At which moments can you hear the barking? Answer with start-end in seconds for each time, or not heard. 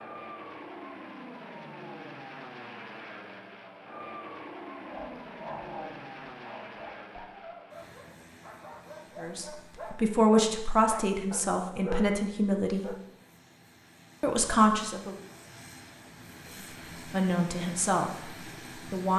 4.8-13.0.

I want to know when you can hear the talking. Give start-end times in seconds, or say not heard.
9.2-12.9, 14.2-15.2, 16.6-19.1.